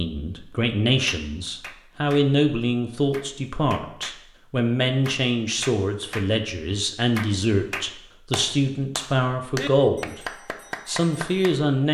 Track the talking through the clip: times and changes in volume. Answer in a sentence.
The talking can be heard from 0.0 to 10.2 s, at a steady volume; and briefly from 10.8 to 11.8 s.